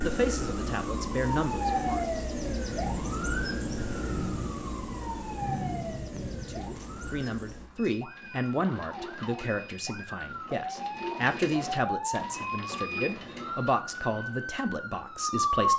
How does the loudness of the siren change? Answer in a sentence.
The volume of the siren goes down, then up.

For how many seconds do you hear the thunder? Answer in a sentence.
You can hear the thunder for 5 seconds altogether.